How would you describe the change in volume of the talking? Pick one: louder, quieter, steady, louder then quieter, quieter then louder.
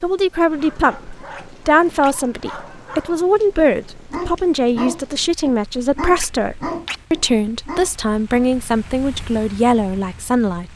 steady.